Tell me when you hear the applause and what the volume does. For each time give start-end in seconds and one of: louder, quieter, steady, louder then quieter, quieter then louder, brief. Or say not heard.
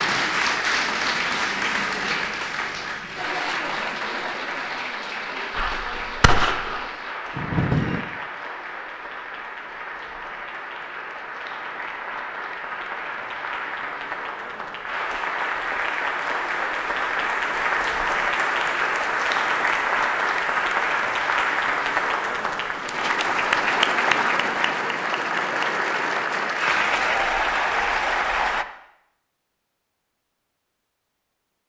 0.0-28.6 quieter then louder.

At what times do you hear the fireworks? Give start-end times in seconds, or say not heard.
5.5-8.0.